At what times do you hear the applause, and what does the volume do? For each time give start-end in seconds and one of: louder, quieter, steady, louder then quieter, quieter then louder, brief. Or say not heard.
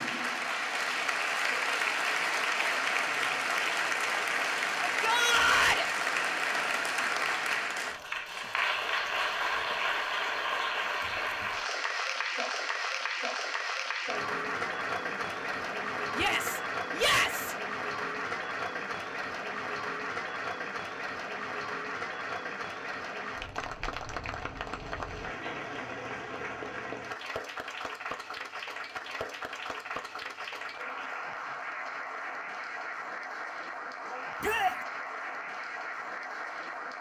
0.0-36.9 quieter.